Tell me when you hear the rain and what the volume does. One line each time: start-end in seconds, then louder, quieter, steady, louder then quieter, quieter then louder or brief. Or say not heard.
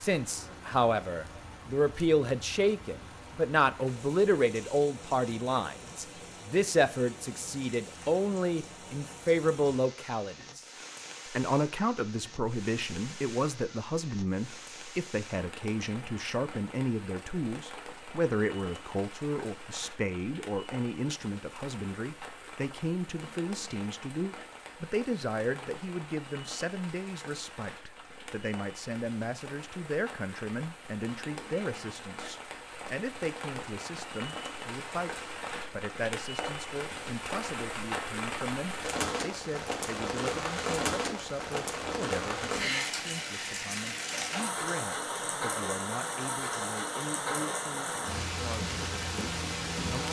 0.0-50.0 louder.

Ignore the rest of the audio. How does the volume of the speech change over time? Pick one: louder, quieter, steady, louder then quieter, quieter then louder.
quieter.